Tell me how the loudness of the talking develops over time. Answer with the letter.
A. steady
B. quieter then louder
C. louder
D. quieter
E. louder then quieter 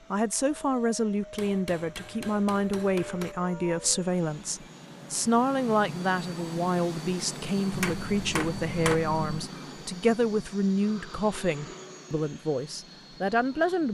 A.